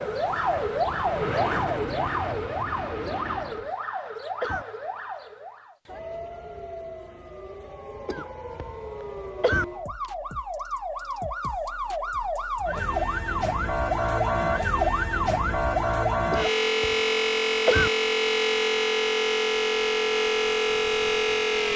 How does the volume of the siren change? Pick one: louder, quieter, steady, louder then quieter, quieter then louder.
quieter then louder.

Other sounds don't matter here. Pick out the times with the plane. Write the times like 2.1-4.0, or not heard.
0.0-3.8.